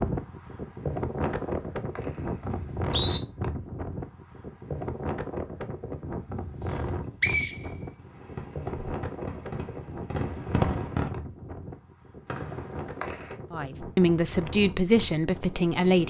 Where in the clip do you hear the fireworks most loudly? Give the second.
11 s.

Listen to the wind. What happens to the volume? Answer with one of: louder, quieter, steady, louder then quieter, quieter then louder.
quieter.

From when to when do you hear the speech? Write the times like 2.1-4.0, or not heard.
13.5-16.0.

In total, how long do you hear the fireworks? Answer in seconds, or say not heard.
3 s.